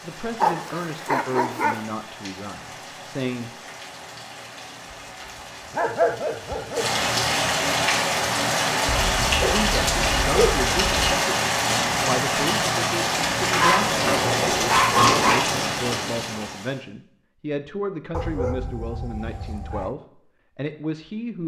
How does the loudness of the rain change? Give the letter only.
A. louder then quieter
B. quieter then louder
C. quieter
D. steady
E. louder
E.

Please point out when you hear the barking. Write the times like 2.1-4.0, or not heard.
0.4-1.8, 5.8-6.9, 8.9-11.2, 13.6-15.4, 18.1-19.9.